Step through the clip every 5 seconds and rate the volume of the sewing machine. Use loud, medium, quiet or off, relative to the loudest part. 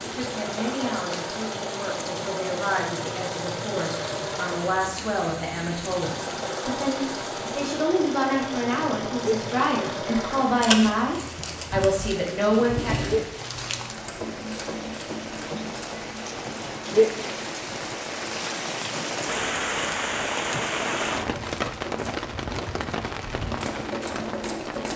loud, loud, loud, medium, loud.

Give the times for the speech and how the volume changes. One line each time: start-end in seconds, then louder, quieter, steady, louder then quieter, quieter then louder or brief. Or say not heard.
0.0-12.9 louder.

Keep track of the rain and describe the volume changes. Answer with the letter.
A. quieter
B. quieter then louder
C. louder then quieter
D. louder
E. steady
D.